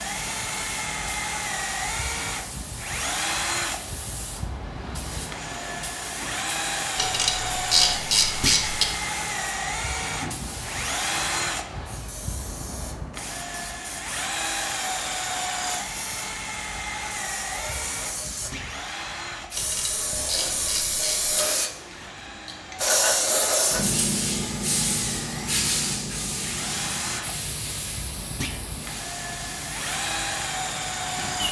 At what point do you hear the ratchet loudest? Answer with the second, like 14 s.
8 s.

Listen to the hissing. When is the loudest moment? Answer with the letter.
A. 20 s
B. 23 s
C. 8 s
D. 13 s
B.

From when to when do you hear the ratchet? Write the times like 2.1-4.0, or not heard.
7.0-8.8, 19.6-21.4.